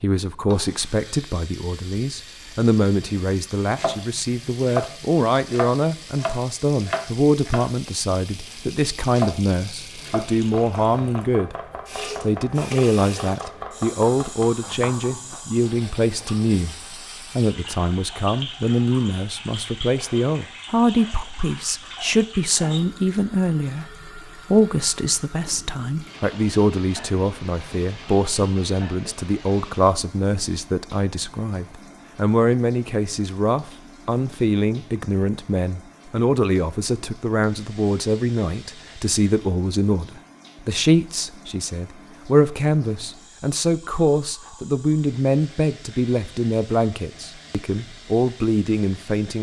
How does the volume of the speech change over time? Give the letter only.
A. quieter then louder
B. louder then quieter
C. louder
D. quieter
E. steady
E.